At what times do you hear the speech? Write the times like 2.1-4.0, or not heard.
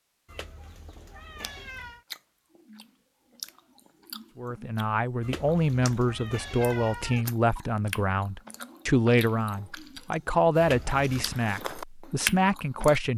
4.3-13.1.